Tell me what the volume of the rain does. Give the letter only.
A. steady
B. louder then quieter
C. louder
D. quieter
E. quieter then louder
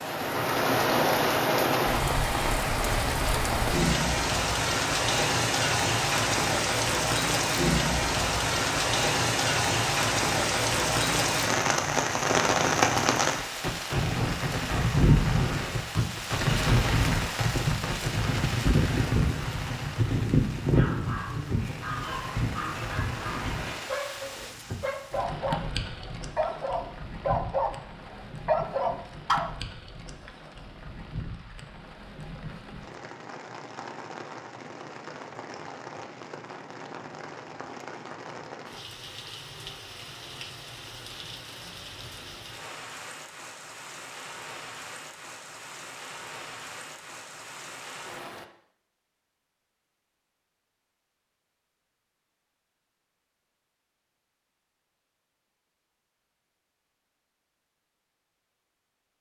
D.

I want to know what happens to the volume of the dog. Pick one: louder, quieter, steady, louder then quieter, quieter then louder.
louder.